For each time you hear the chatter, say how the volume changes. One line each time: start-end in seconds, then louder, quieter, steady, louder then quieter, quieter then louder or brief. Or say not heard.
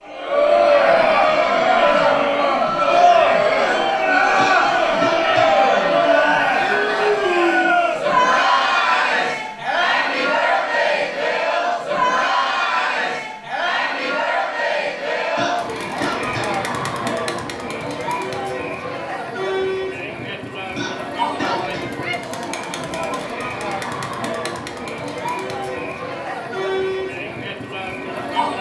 0.1-28.5 quieter.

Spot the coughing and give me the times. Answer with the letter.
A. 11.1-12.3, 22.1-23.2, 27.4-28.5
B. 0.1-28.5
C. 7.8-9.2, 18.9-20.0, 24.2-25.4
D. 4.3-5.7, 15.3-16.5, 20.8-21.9
D.